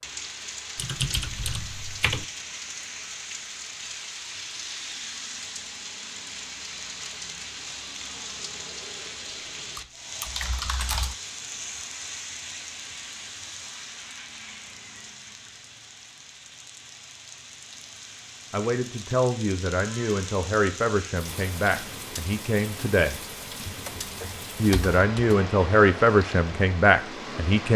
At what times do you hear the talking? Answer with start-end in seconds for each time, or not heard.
18.5-23.2, 24.6-27.7.